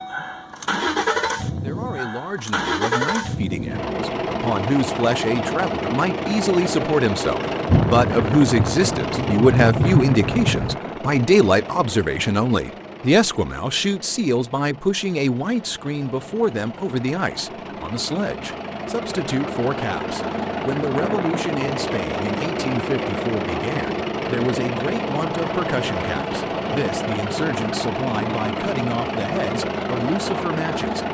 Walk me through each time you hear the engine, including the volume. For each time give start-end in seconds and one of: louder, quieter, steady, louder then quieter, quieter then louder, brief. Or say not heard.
0.0-31.0 quieter then louder.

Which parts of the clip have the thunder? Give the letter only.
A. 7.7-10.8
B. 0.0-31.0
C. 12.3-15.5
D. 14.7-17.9
A.